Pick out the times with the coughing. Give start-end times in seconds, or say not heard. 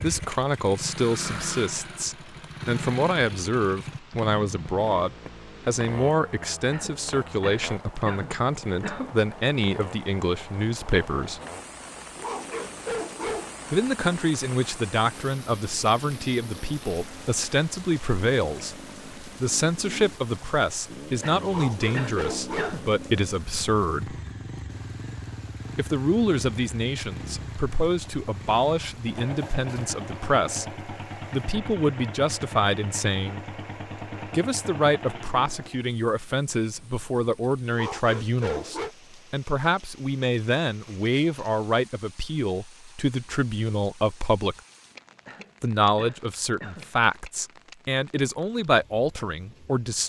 6.7-9.2, 21.2-22.9, 45.2-47.0.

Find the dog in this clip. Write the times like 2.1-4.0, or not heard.
12.2-13.6, 21.4-22.9, 37.7-38.9.